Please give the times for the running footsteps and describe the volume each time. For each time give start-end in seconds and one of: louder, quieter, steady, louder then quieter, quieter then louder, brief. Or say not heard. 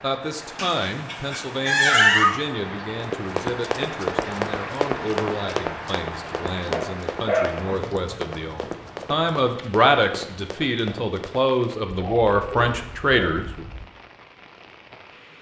3.0-11.8 quieter.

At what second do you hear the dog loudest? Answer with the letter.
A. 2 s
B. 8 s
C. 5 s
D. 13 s
A.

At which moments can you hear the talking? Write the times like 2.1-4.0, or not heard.
0.0-13.7.